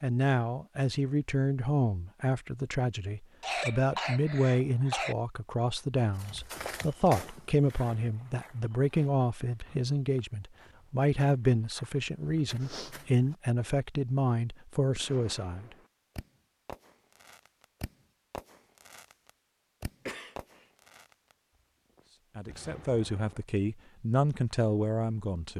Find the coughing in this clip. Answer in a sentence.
You can hear the coughing from 3.4 to 5.2 s and from 20.1 to 20.7 s.